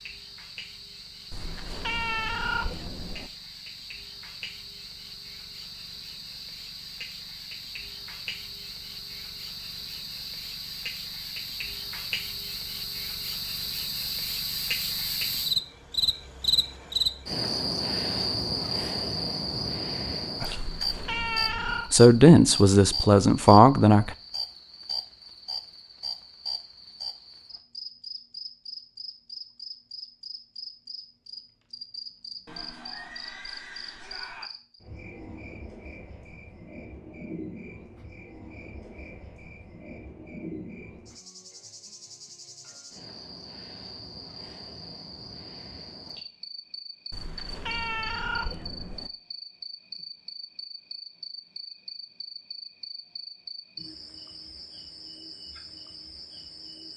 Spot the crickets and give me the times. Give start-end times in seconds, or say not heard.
0.0-56.9.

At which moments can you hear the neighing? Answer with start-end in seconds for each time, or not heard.
32.5-34.5.